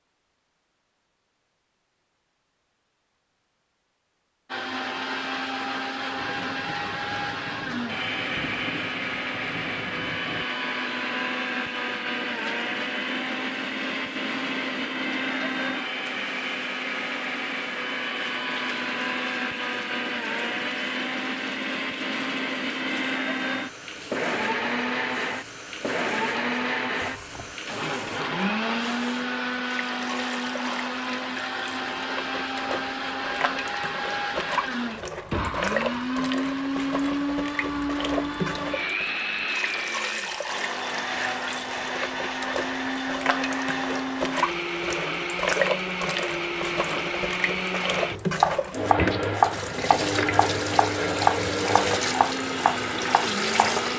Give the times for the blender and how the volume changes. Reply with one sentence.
The blender can be heard from 4.5 to 53.9 s, at a steady volume.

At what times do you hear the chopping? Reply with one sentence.
You can hear the chopping from 48.4 to 53.8 s.